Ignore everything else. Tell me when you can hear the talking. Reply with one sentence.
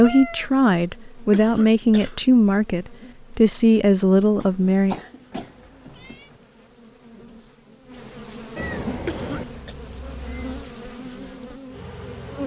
The talking can be heard from 0.0 to 5.0 s.